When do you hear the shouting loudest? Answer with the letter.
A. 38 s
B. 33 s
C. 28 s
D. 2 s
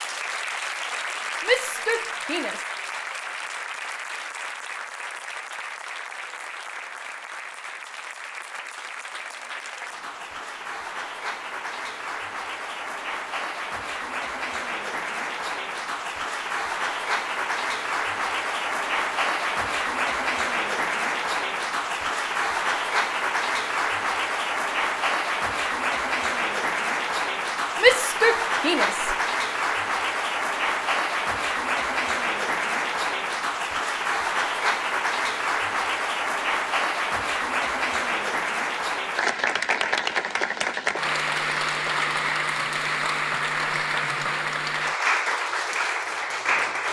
C.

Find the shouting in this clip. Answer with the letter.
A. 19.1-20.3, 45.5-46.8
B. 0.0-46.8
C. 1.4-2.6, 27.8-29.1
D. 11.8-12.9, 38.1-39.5
C.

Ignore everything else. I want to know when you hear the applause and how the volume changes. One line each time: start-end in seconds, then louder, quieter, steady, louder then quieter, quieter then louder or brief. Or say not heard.
0.0-46.8 louder.